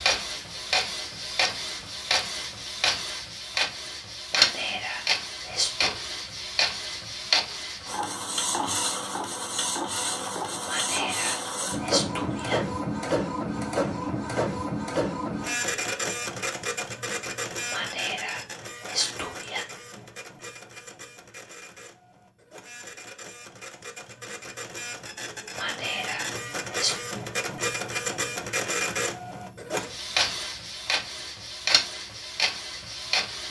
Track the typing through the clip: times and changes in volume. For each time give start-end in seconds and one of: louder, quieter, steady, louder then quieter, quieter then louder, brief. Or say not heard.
not heard.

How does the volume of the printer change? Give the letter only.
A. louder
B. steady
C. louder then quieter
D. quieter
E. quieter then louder
E.